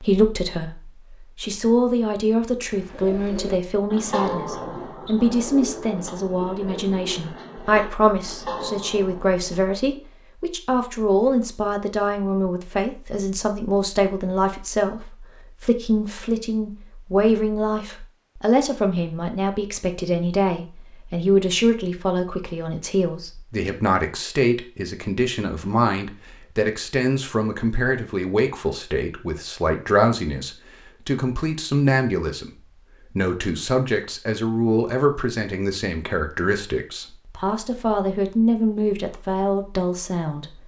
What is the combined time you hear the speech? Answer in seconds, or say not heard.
40 s.